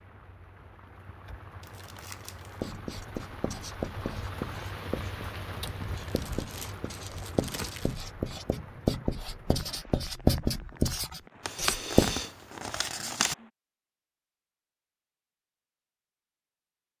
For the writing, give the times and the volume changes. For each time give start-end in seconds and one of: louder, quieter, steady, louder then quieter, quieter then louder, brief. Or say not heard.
2.6-12.2 louder.